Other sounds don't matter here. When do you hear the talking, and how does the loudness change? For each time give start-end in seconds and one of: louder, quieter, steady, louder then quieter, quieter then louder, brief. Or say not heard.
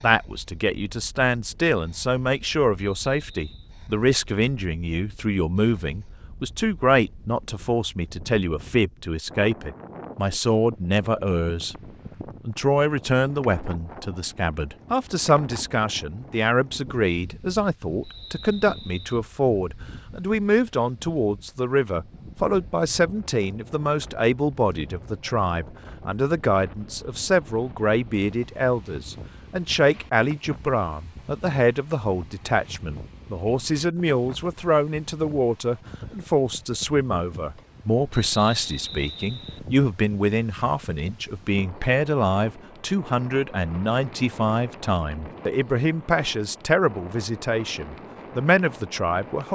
0.0-11.8 steady
12.4-49.5 steady.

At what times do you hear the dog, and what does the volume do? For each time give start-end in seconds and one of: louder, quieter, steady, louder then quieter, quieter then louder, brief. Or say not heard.
not heard.